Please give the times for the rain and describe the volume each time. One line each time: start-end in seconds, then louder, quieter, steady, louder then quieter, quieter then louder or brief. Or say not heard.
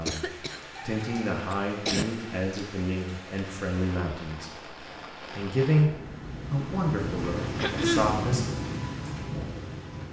0.0-10.0 louder.